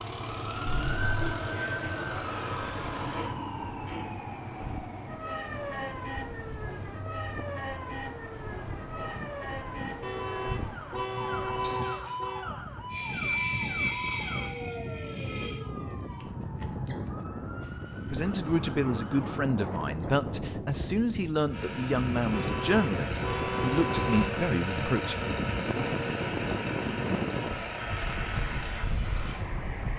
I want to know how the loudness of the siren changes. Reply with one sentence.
The volume of the siren goes down.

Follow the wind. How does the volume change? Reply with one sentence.
The volume of the wind goes up.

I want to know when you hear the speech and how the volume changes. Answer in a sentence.
You can hear the speech from 18.1 to 25.4 s, at a steady volume.